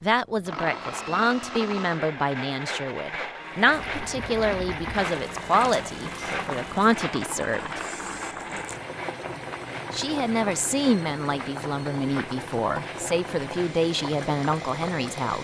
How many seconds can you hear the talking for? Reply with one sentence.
You can hear the talking for 13 seconds altogether.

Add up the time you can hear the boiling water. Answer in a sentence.
The boiling water can be heard for 12 seconds in total.